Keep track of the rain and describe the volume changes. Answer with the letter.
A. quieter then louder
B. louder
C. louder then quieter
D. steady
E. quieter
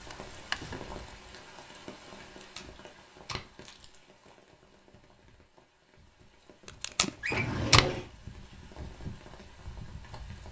A.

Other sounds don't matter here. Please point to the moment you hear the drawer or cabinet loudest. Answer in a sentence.
The volume of the drawer or cabinet peaks at 8 seconds.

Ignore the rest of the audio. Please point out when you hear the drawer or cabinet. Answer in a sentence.
You can hear the drawer or cabinet from 0.1 to 0.8 s and from 7.2 to 8.1 s.